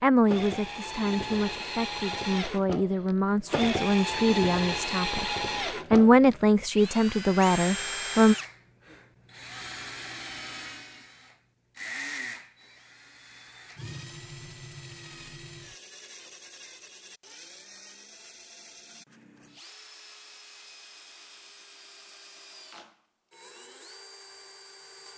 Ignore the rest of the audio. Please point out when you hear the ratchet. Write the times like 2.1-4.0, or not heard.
not heard.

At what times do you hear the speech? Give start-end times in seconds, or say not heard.
0.0-5.2, 5.9-8.3.